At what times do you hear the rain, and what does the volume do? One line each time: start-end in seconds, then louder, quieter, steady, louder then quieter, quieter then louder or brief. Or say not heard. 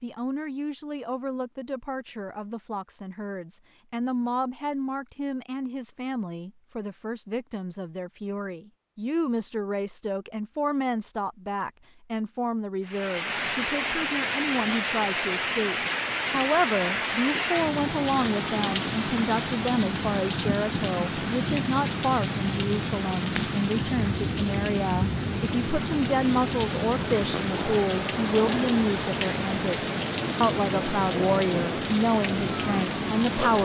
12.8-33.6 steady.